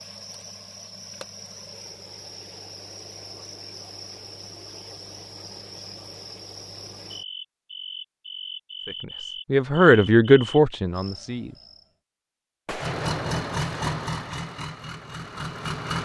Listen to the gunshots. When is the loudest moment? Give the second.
13 s.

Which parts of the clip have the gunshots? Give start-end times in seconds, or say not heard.
12.7-14.4.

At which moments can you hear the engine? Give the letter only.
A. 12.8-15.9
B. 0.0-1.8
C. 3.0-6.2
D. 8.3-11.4
A.